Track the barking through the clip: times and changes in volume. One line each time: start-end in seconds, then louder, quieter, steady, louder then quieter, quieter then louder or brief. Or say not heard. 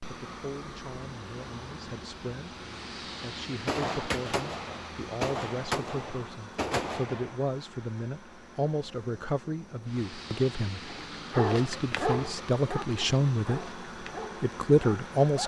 10.8-15.4 quieter.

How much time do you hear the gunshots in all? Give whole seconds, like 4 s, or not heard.
4 s.